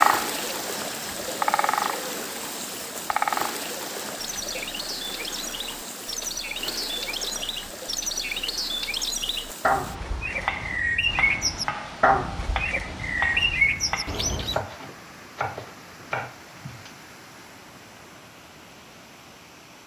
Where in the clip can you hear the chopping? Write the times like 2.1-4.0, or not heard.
10.3-16.9.